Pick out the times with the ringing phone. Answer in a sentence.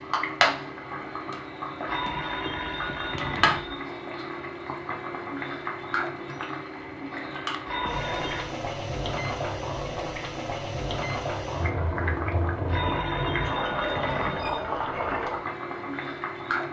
You can hear the ringing phone from 1.9 to 3.8 s, from 7.7 to 8.5 s and from 12.7 to 14.6 s.